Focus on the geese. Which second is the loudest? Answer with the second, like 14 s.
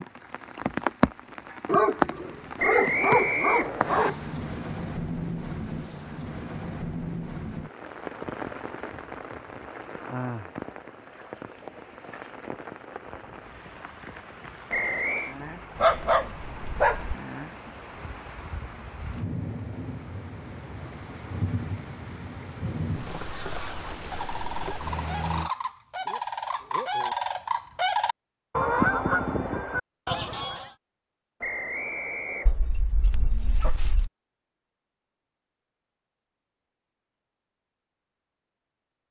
29 s.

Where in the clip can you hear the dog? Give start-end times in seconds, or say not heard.
1.6-4.4, 15.8-17.1, 32.5-34.1.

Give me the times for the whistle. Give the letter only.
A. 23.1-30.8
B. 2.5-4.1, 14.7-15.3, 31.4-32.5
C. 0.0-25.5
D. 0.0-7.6
B.